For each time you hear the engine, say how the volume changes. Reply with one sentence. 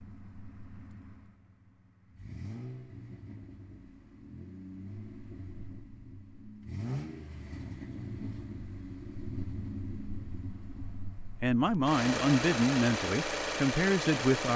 The engine can be heard from 0.0 to 14.5 s, getting louder.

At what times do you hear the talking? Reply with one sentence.
You can hear the talking from 11.4 to 14.5 s.